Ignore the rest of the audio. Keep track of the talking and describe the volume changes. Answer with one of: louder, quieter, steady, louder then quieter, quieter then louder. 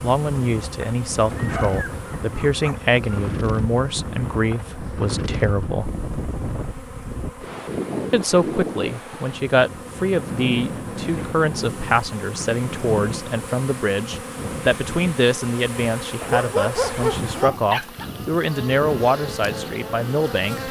steady.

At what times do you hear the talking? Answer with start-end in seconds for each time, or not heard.
0.0-5.9, 8.1-20.6.